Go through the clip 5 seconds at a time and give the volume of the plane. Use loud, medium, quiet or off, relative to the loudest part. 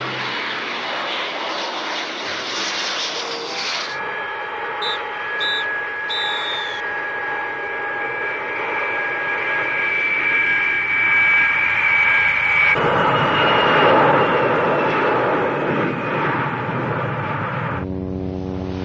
medium, medium, loud, medium.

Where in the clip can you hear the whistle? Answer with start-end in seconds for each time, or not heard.
4.8-6.8.